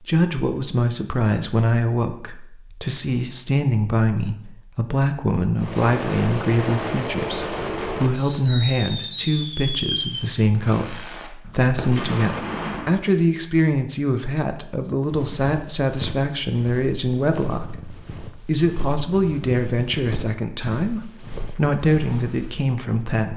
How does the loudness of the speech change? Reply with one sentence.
The volume of the speech stays about the same.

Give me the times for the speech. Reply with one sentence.
The speech can be heard from 0.0 to 23.3 s.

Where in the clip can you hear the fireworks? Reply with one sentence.
You can hear the fireworks from 5.5 to 12.9 s.